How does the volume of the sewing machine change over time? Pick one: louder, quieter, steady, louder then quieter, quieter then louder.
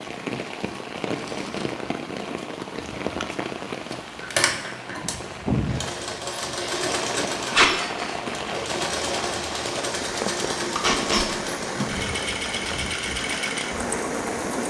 steady.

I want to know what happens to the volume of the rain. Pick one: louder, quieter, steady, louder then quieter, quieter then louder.
steady.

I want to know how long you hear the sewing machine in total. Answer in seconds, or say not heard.
11 s.